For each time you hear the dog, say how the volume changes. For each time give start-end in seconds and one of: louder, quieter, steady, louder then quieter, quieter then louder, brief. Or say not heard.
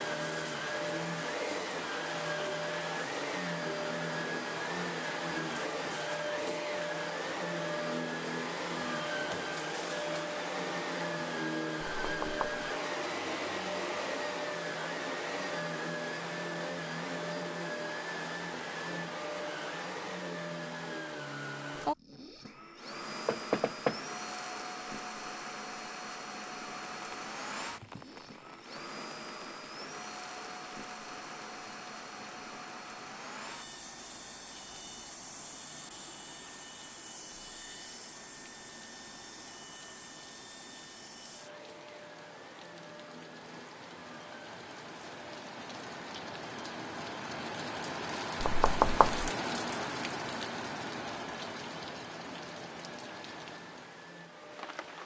not heard.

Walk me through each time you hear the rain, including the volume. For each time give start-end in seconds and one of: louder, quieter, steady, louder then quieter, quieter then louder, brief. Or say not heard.
26.8-55.0 louder.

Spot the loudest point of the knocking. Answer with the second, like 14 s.
49 s.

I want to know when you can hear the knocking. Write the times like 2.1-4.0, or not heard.
12.0-12.7, 23.2-24.0, 48.4-49.2.